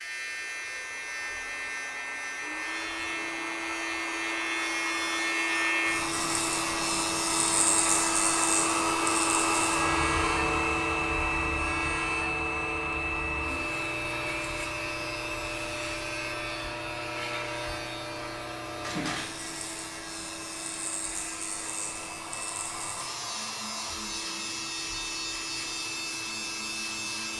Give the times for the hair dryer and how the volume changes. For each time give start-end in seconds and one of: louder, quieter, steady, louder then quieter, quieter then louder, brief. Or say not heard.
0.1-27.3 louder then quieter.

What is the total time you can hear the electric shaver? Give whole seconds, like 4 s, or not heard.
27 s.